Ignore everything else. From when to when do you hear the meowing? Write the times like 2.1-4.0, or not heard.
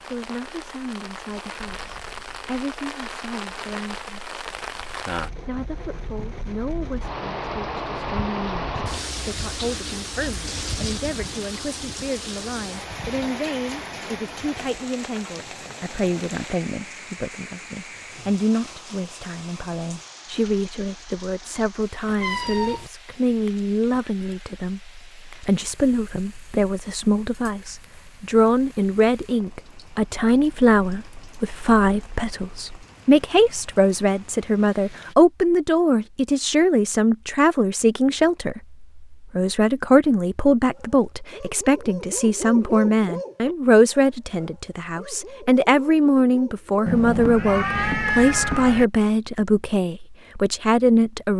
22.1-22.9, 46.9-48.9.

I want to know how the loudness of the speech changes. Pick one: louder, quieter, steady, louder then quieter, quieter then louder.
louder.